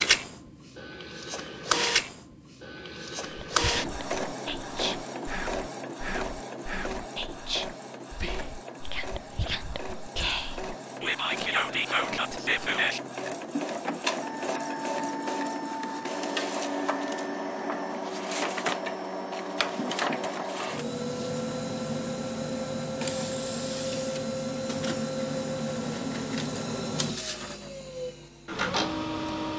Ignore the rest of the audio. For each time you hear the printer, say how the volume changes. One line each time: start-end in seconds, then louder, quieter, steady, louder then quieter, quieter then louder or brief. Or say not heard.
0.0-29.5 quieter then louder.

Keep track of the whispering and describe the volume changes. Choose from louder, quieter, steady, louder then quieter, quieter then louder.
louder.